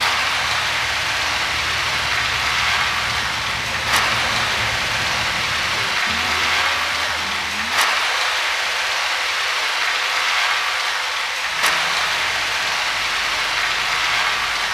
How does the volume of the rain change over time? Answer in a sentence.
The volume of the rain stays about the same.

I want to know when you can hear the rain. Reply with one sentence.
You can hear the rain from 0.0 to 14.6 s.